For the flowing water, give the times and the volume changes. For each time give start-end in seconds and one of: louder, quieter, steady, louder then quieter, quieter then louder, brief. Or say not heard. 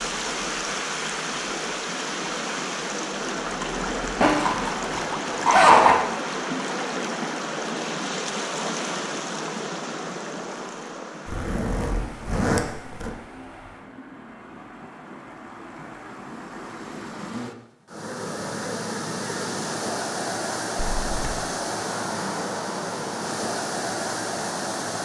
0.0-25.0 quieter then louder.